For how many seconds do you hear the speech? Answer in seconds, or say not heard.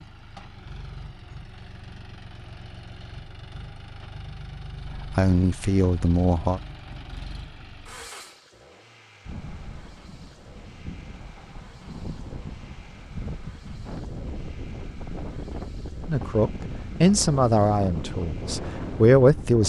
5 s.